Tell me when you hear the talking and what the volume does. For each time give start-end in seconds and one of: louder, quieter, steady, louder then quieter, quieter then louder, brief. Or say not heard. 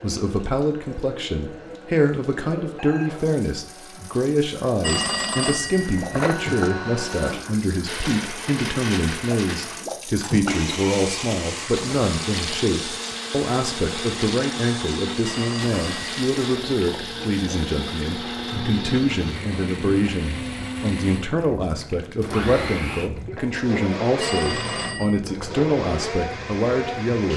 0.0-27.3 steady.